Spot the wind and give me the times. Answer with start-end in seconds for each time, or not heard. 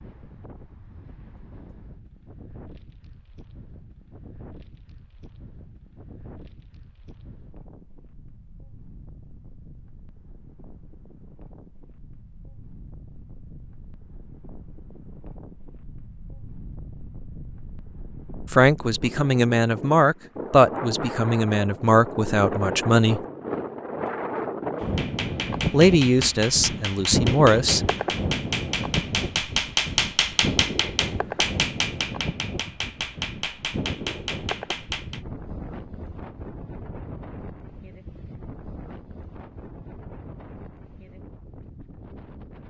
0.0-42.6.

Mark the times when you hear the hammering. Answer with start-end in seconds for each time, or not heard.
24.8-35.2.